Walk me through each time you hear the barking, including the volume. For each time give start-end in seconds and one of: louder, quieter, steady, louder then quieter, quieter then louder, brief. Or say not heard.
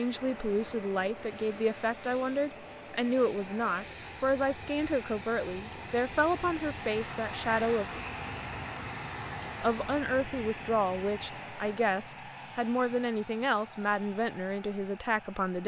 not heard.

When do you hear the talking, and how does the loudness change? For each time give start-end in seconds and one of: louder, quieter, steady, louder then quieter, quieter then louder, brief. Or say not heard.
0.0-8.0 steady
9.6-15.6 steady.